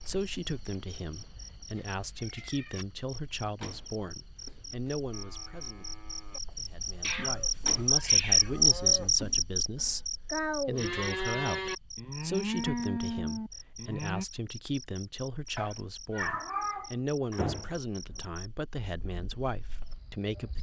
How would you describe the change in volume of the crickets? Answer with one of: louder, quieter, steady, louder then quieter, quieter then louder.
louder then quieter.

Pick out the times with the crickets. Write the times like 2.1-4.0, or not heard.
0.0-20.5.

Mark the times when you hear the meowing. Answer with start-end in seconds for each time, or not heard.
1.8-2.9, 7.0-8.7, 15.6-16.9.